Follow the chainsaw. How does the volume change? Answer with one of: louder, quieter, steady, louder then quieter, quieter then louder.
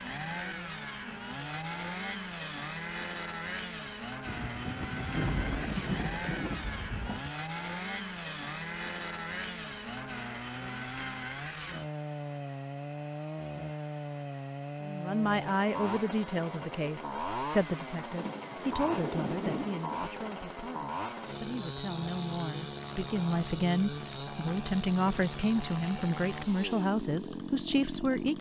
steady.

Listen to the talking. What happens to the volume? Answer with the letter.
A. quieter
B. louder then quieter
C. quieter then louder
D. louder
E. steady
C.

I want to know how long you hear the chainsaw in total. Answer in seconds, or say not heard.
28 s.